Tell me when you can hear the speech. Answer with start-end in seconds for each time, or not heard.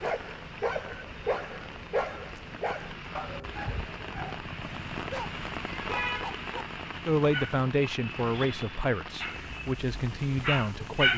7.0-11.1.